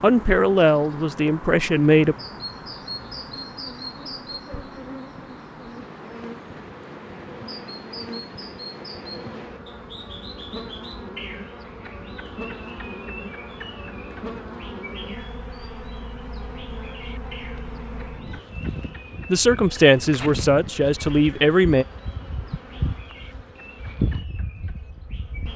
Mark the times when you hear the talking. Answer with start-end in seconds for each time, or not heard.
0.0-2.1, 19.3-21.9.